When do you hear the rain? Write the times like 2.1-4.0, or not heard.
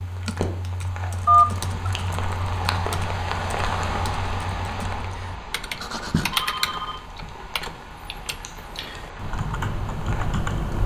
0.0-10.8.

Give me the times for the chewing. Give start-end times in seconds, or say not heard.
not heard.